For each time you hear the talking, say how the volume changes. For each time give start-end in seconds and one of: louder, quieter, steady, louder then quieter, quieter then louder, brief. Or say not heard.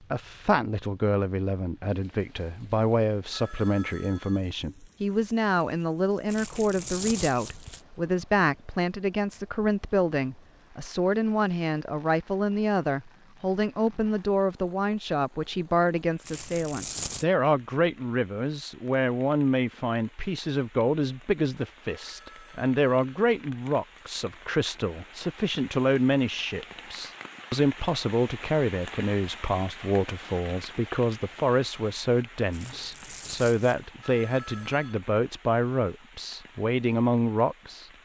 0.1-37.9 steady.